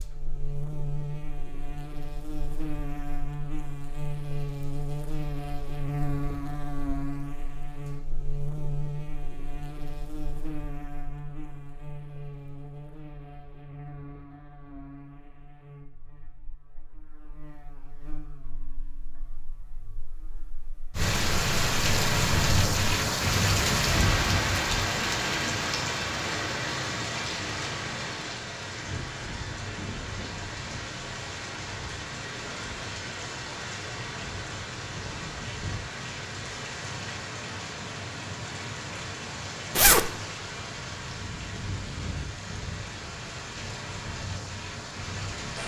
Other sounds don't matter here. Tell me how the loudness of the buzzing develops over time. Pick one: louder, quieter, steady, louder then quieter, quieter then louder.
quieter.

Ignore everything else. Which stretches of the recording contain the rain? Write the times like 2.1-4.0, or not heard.
20.9-45.6.